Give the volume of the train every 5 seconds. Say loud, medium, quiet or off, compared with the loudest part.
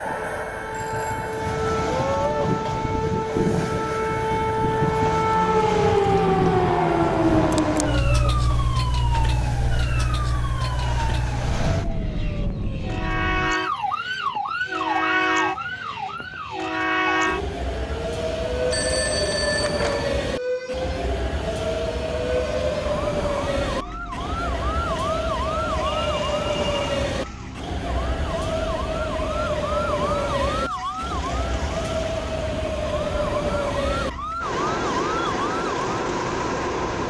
medium, medium, medium, loud, loud, loud, loud, loud.